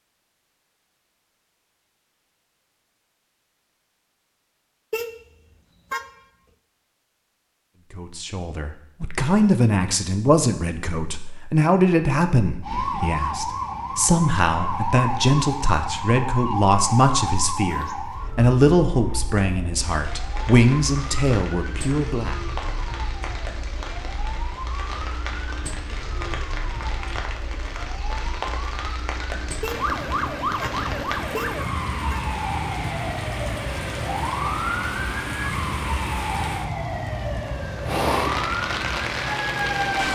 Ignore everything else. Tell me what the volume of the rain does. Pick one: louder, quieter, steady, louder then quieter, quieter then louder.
louder.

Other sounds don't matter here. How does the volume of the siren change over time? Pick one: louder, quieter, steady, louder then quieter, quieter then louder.
quieter then louder.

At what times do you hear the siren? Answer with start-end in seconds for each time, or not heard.
12.6-40.1.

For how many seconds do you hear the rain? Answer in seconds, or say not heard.
20 s.